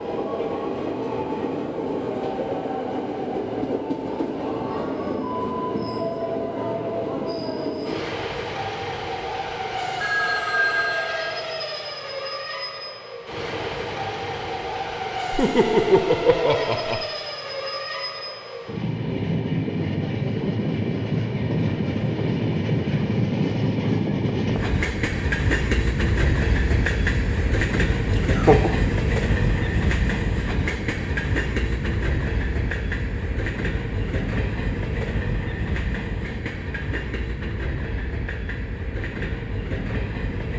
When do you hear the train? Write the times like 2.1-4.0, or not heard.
0.0-40.5.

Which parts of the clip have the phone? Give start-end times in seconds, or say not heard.
10.0-11.4.